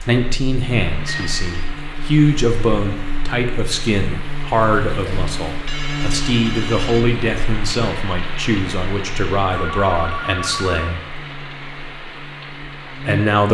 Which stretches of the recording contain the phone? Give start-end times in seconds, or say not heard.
1.1-1.8, 5.0-7.0, 9.5-11.0.